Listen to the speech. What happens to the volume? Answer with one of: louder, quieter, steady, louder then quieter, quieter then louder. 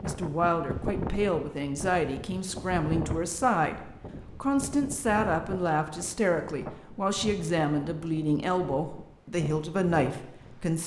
steady.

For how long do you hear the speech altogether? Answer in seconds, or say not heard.
11 s.